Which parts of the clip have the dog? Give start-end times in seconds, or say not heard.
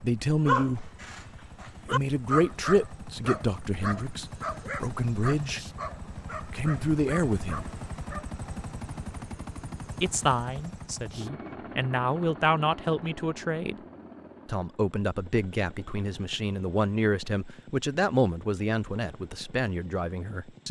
0.5-8.3.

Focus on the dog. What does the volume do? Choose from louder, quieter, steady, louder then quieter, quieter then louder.
quieter.